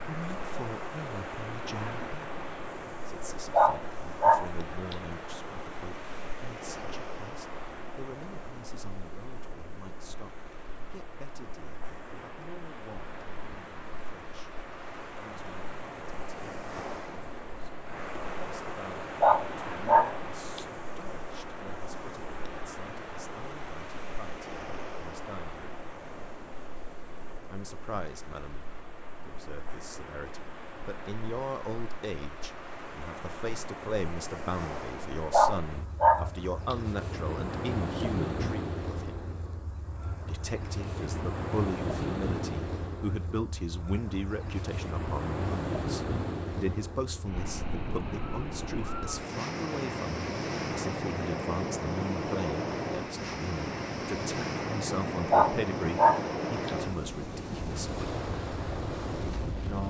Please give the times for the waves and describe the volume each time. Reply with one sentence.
You can hear the waves from 0.0 to 59.8 s, getting louder.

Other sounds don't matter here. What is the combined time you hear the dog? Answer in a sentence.
You can hear the dog for 6 seconds altogether.